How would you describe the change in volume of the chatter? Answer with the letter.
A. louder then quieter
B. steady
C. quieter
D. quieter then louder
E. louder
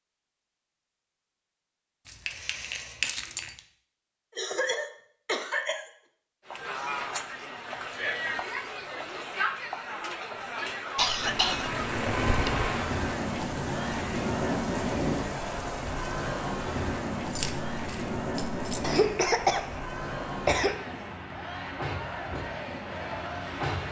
C.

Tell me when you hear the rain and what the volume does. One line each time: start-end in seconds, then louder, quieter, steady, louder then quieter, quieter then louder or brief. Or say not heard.
11.2-23.8 quieter.